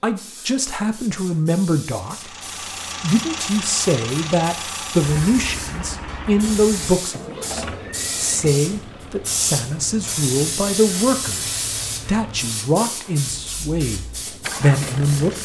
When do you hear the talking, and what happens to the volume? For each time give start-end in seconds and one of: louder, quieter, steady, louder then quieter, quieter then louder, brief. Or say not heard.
0.0-2.4 brief
3.0-15.4 steady.